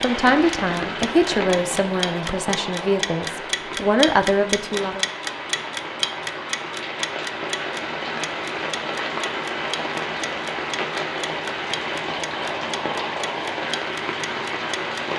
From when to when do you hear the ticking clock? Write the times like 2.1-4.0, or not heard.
0.0-15.1.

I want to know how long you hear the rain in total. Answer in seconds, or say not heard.
15 s.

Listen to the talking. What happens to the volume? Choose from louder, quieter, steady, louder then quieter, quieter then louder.
quieter then louder.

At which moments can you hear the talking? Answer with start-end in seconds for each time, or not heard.
0.0-5.0.